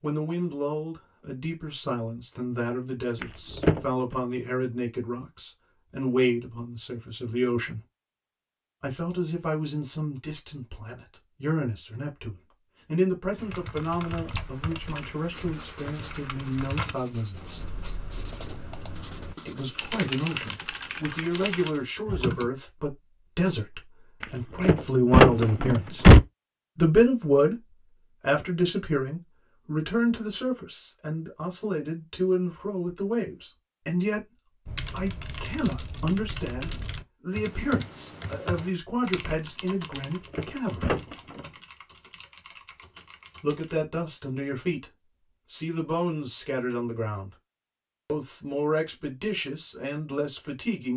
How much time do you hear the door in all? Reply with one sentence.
You can hear the door for 4 seconds altogether.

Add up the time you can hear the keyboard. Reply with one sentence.
You can hear the keyboard for 18 seconds altogether.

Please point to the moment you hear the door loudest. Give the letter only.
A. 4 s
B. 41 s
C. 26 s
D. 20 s
C.